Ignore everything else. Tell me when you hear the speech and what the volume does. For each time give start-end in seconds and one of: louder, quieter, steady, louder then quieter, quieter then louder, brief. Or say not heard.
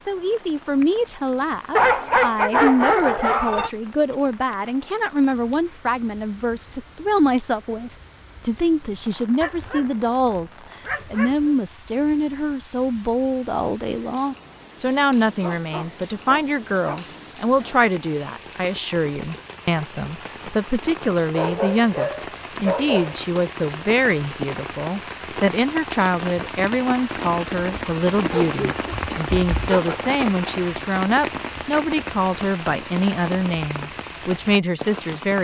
0.0-35.3 steady.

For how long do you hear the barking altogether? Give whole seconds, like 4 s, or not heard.
10 s.